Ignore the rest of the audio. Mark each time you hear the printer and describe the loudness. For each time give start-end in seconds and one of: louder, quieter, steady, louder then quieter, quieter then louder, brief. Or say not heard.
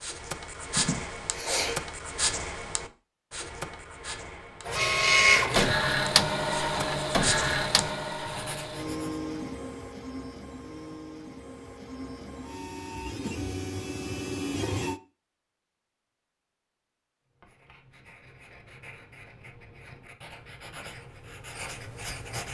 4.7-15.0 quieter then louder.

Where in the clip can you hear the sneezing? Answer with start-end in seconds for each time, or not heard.
0.8-1.9.